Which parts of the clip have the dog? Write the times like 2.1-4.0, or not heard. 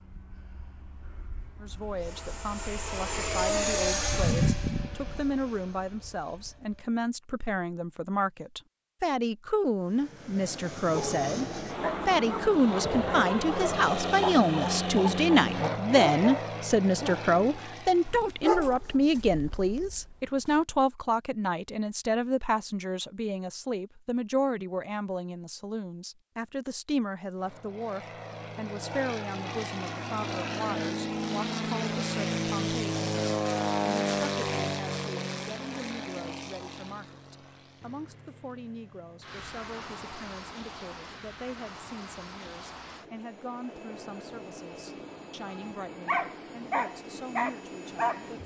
10.9-20.6, 45.5-48.3.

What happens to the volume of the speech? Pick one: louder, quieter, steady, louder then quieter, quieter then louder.
louder then quieter.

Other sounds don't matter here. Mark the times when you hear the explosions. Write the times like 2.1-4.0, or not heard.
not heard.